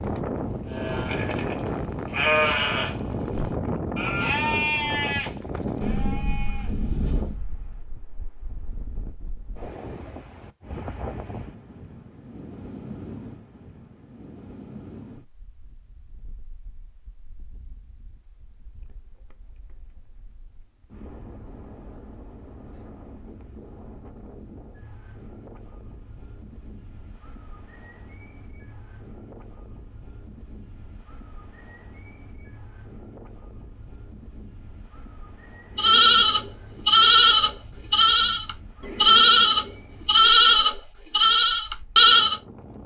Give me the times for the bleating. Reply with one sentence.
You can hear the bleating from 0.7 to 7.4 s and from 35.8 to 42.4 s.